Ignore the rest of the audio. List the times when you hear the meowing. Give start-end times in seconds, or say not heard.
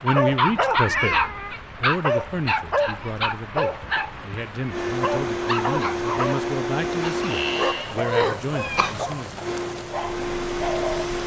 0.8-1.6, 7.2-8.9.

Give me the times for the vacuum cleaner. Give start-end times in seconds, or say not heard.
4.7-7.8, 9.4-11.2.